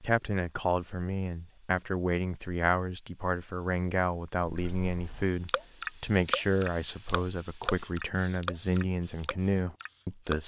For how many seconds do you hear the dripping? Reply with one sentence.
You can hear the dripping for 6 seconds altogether.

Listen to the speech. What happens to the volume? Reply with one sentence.
The loudness of the speech stays about the same.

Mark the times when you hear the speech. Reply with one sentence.
You can hear the speech from 0.0 to 10.4 s.